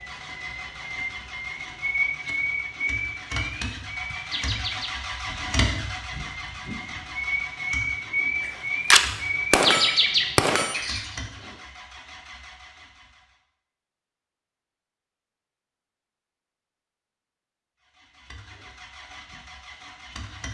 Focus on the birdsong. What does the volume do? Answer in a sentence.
The volume of the birdsong goes up.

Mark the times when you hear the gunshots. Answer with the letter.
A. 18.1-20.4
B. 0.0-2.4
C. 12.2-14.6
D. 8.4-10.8
D.